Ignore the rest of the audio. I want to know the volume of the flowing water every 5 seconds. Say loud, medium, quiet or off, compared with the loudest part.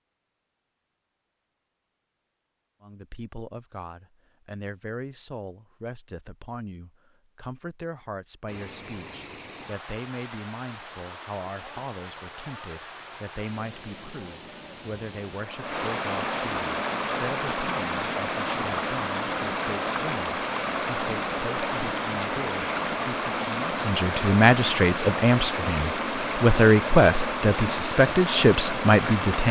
off, quiet, quiet, loud, loud, loud.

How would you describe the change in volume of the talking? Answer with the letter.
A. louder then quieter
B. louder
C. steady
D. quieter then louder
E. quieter
B.